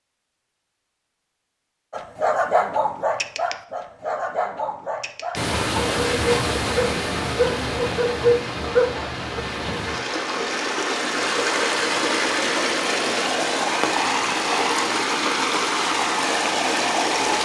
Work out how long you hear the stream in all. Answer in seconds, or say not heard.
12 s.